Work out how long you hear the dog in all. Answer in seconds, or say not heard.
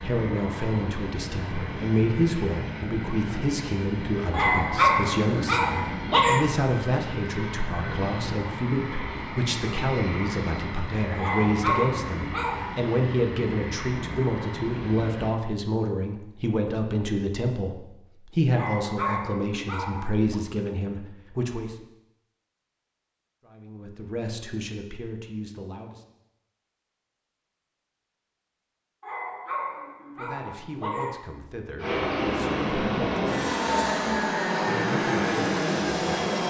8 s.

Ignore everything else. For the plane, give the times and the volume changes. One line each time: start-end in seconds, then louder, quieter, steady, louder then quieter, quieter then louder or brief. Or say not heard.
0.0-15.3 steady
31.8-36.4 steady.